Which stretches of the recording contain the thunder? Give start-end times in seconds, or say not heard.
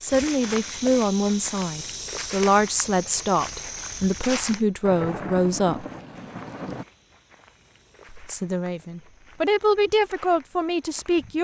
4.8-6.8.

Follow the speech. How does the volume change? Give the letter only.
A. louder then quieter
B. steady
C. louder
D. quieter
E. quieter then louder
B.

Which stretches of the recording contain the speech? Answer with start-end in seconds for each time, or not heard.
0.0-5.8, 8.1-11.4.